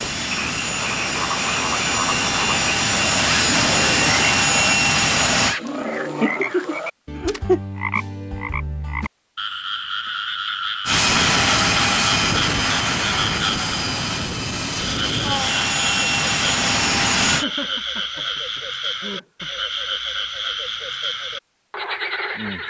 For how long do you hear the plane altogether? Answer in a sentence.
The plane can be heard for 12 seconds in total.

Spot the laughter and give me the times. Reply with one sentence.
The laughter can be heard from 5.7 to 7.6 s and from 17.4 to 19.5 s.